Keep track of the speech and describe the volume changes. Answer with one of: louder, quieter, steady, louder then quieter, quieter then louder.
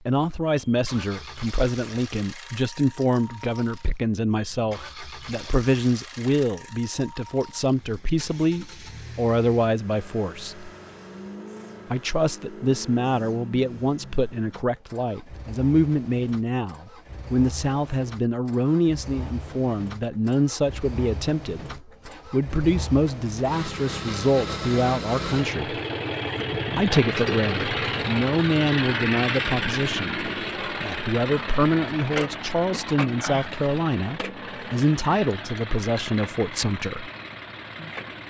steady.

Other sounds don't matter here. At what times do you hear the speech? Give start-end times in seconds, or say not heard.
0.1-10.7, 11.9-25.8, 26.8-37.1.